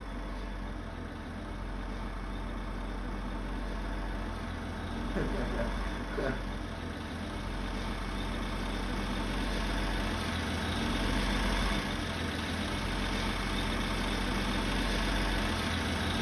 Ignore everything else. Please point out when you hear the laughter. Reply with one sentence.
The laughter can be heard from 5.2 to 6.4 s.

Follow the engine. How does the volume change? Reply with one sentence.
The volume of the engine goes up.